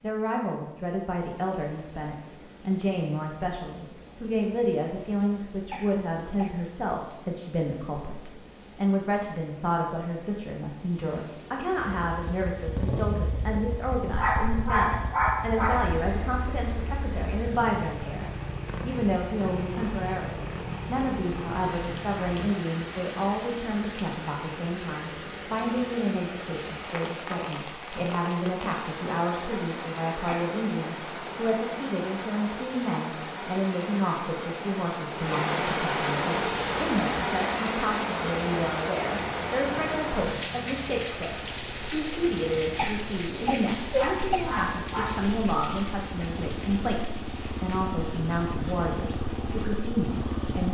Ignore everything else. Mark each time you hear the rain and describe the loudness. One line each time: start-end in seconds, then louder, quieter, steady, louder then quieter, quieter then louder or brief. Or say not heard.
0.0-50.6 louder then quieter.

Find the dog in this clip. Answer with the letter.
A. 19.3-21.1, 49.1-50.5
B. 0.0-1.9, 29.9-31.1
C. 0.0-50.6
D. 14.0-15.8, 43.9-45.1
D.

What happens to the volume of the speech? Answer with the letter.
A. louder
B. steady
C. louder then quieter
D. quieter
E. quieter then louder
B.